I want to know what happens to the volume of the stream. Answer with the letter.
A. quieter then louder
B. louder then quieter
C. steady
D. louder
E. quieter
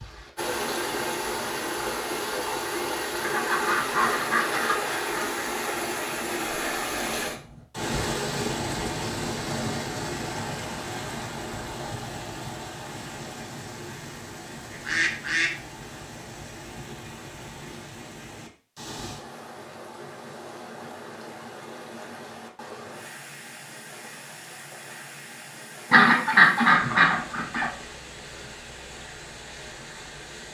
E.